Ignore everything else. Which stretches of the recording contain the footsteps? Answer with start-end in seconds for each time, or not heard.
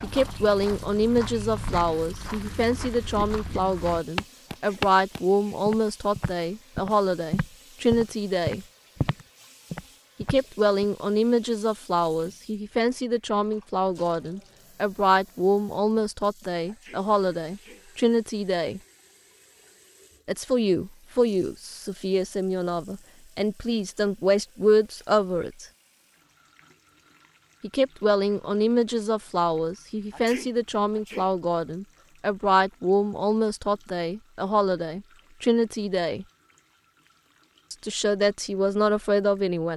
0.0-10.8.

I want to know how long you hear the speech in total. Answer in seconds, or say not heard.
33 s.